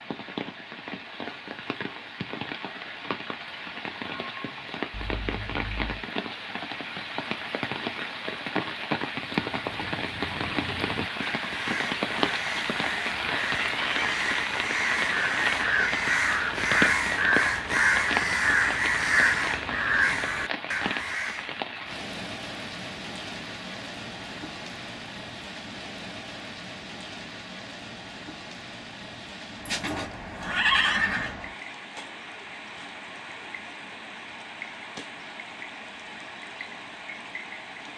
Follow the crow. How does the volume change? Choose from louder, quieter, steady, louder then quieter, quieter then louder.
louder.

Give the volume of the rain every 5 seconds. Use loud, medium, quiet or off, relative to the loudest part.
medium, loud, loud, loud, medium, medium, medium, medium.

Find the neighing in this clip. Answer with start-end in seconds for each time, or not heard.
29.6-31.4.